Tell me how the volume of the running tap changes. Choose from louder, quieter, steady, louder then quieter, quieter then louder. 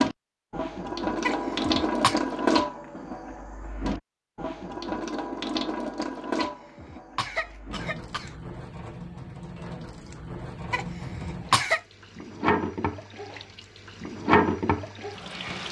quieter then louder.